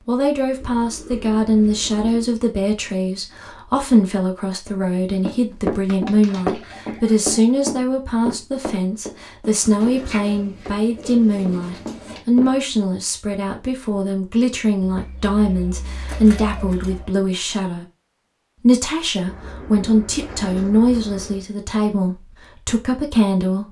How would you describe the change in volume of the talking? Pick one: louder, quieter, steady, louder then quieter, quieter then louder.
steady.